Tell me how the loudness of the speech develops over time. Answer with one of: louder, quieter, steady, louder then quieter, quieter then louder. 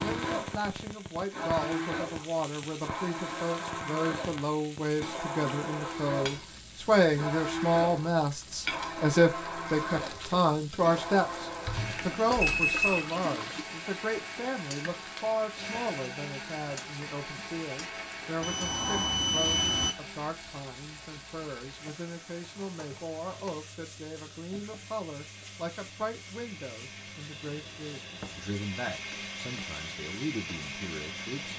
louder then quieter.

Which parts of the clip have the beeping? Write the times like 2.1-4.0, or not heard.
11.7-13.2, 18.4-19.9.